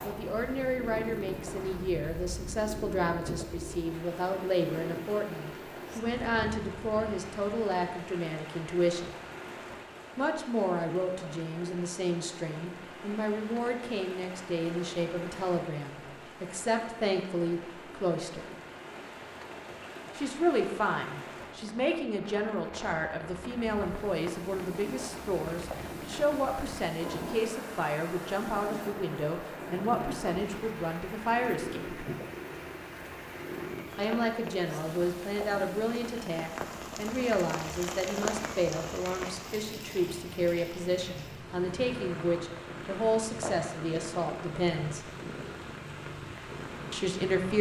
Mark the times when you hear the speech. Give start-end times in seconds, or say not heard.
0.0-9.2, 10.2-18.4, 20.1-32.0, 34.0-45.0, 46.9-47.5.